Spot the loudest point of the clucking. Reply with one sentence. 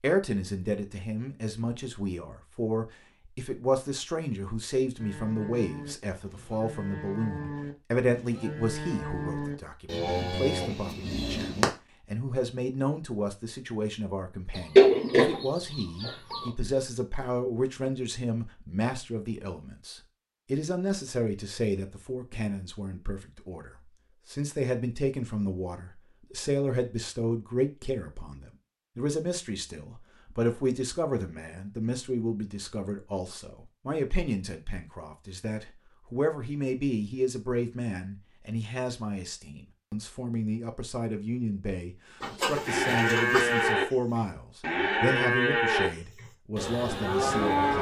The loudest moment of the clucking is at 15 seconds.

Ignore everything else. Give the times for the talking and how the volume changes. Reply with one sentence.
The talking can be heard from 0.0 to 47.7 s, at a steady volume.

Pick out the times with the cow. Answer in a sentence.
You can hear the cow from 5.0 to 11.7 s and from 42.6 to 47.7 s.